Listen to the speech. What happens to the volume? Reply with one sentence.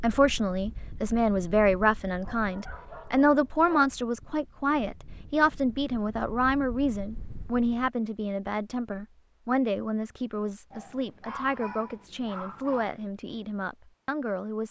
The loudness of the speech goes down.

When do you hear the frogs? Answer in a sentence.
You can't hear the frogs here.